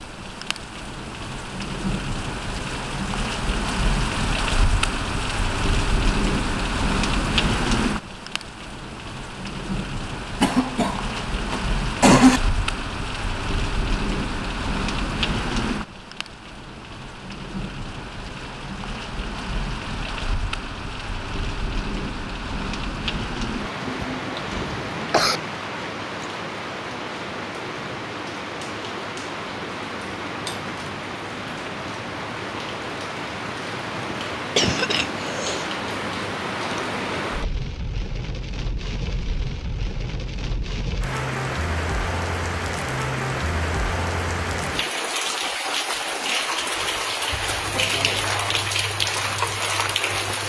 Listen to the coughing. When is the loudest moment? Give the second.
12 s.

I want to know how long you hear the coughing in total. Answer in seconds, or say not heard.
5 s.